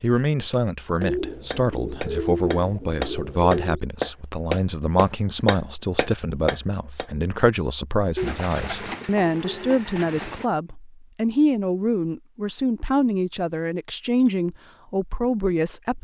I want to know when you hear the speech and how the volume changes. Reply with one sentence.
The speech can be heard from 0.0 to 15.9 s, at a steady volume.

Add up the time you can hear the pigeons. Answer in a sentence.
You can hear the pigeons for 5 seconds altogether.